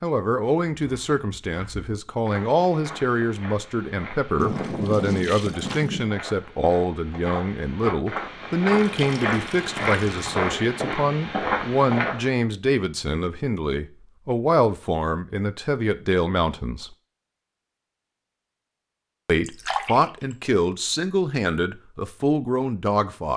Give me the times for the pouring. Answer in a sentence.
You can hear the pouring from 4.3 to 6.0 s, from 8.7 to 10.5 s and from 19.4 to 20.1 s.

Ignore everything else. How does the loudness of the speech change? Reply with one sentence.
The volume of the speech stays about the same.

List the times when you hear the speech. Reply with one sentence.
You can hear the speech from 0.0 to 16.9 s and from 19.2 to 23.3 s.